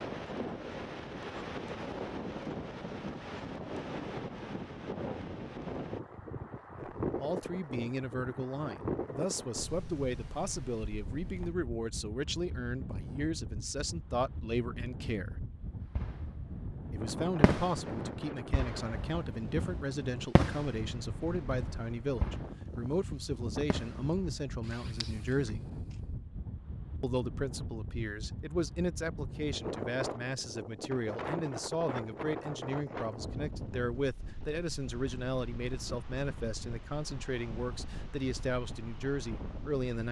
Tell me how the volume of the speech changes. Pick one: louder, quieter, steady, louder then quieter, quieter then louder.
steady.